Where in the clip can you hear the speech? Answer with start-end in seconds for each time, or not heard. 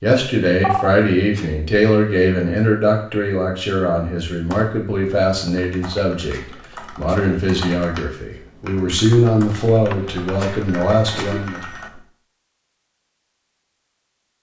0.0-11.6.